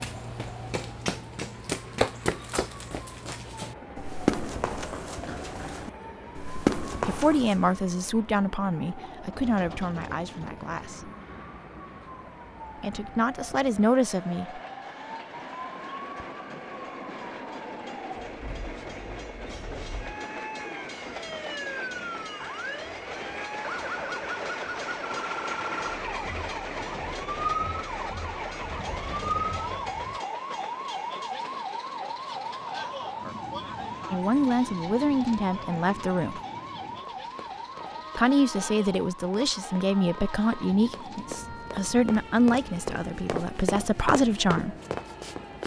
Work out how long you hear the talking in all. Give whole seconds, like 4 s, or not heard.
15 s.